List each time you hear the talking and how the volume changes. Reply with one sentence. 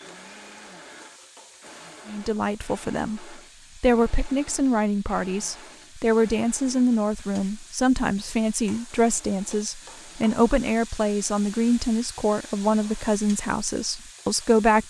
The talking can be heard from 2.0 to 14.8 s, at a steady volume.